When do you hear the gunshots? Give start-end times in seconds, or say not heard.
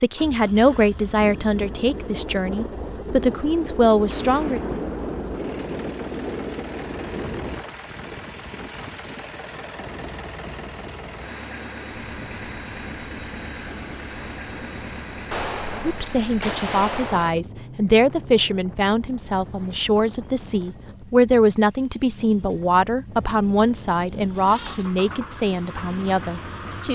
4.1-5.4, 15.3-17.3.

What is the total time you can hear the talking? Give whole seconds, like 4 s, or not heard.
16 s.